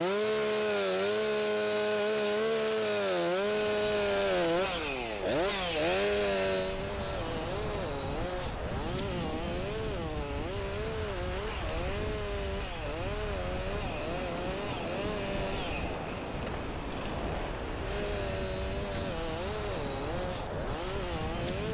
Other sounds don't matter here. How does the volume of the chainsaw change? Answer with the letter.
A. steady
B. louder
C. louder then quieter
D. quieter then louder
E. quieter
E.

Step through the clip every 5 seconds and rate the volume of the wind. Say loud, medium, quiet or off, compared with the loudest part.
medium, loud, loud, loud, loud.